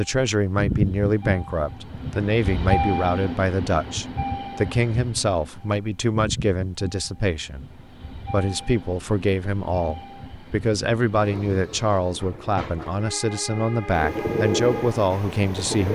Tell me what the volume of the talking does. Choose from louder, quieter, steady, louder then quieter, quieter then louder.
steady.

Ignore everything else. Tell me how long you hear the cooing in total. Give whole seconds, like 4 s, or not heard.
2 s.